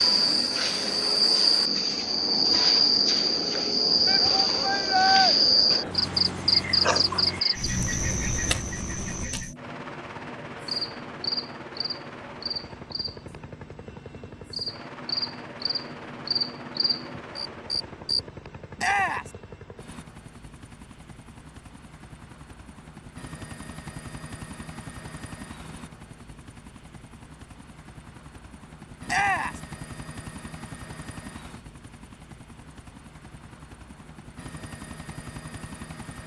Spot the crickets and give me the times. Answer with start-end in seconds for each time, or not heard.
0.0-18.2.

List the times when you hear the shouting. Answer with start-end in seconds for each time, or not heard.
4.0-5.3, 18.8-19.3, 29.1-29.6.